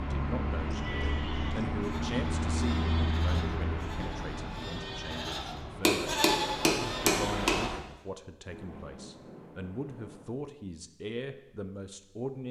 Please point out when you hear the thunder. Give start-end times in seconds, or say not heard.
8.4-10.3.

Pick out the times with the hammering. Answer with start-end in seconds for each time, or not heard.
5.8-7.6.